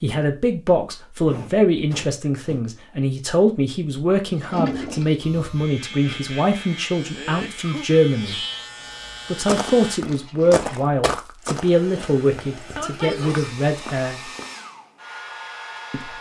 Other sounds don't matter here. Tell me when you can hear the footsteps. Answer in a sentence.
You can hear the footsteps from 9.4 to 14.5 s.